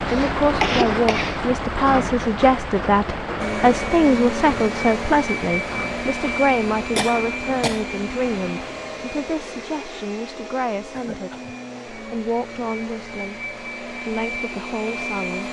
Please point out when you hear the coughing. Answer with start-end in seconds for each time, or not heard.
0.1-1.9, 7.0-7.8, 10.9-11.6.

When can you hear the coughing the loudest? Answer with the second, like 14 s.
1 s.